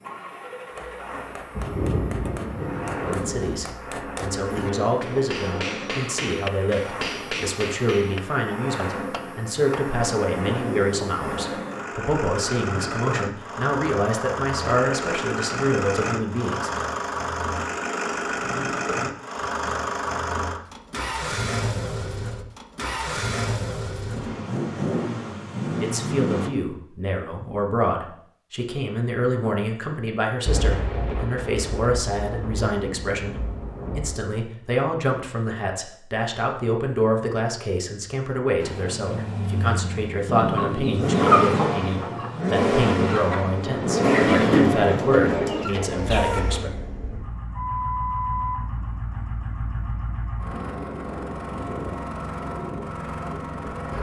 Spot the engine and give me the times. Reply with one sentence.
You can hear the engine from 0.0 to 26.5 s and from 38.5 to 53.9 s.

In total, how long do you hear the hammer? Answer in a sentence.
The hammer can be heard for 9 seconds in total.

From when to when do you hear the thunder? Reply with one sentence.
You can hear the thunder from 1.5 to 3.5 s, from 30.4 to 34.2 s and from 43.6 to 45.6 s.